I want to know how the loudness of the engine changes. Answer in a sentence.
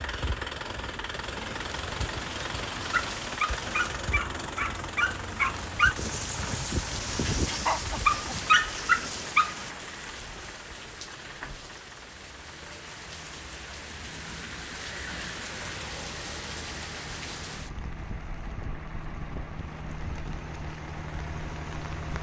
The loudness of the engine goes down, then up.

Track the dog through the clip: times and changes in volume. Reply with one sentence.
The dog can be heard from 2.8 to 9.7 s, getting louder.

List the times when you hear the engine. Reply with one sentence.
The engine can be heard from 0.0 to 22.1 s.